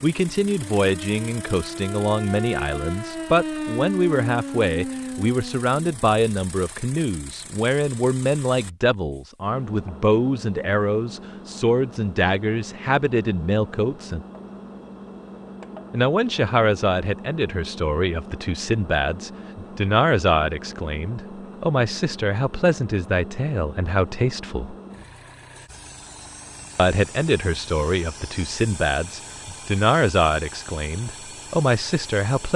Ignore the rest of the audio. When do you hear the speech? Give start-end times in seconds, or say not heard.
0.0-14.2, 15.9-24.8, 26.8-32.5.